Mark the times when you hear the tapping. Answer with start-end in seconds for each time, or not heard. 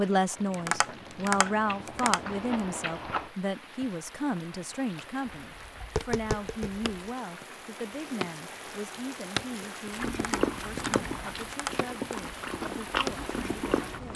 0.5-2.4, 5.5-6.9, 10.1-12.2.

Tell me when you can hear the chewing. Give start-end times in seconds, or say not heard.
0.0-3.3, 9.9-14.1.